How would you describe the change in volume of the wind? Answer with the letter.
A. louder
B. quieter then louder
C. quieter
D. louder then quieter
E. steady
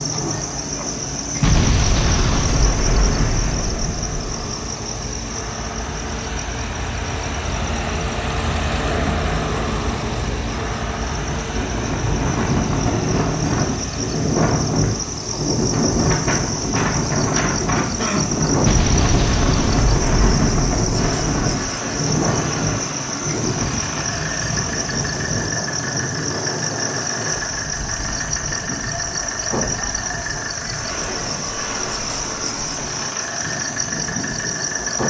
C.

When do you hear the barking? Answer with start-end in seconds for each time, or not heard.
not heard.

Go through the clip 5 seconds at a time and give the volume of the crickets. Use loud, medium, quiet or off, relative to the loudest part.
loud, medium, medium, loud, loud, loud, loud.